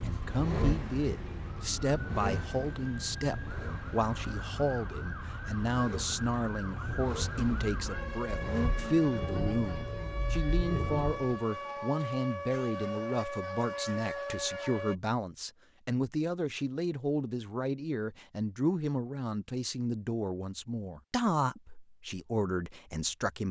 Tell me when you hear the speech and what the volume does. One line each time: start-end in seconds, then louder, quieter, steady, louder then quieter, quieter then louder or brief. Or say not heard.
0.0-23.4 steady.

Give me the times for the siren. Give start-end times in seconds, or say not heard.
0.0-14.9.